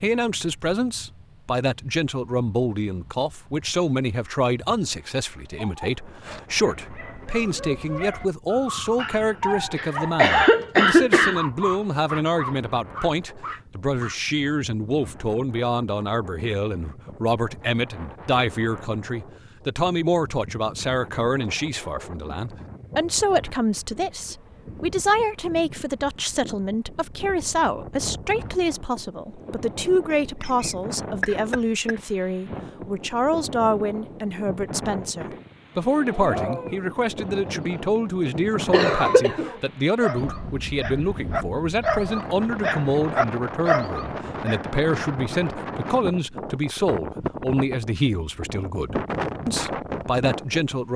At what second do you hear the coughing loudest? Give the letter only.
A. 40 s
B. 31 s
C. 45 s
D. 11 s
D.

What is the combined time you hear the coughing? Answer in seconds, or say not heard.
4 s.